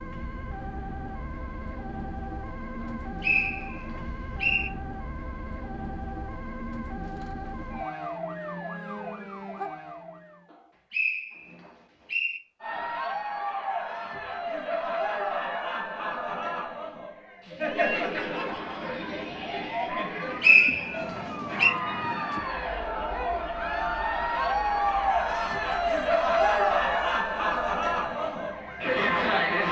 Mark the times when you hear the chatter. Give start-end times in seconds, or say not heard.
12.6-29.6.